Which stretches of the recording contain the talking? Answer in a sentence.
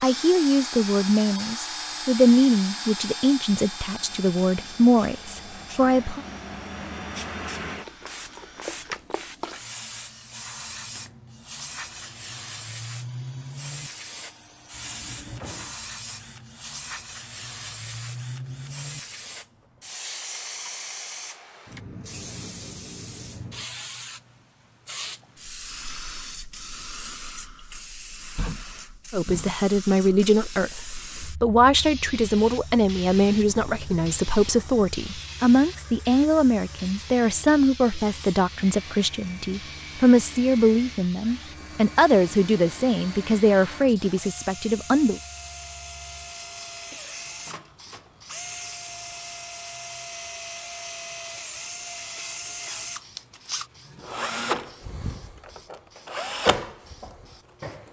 You can hear the talking from 0.0 to 6.2 s and from 29.1 to 45.2 s.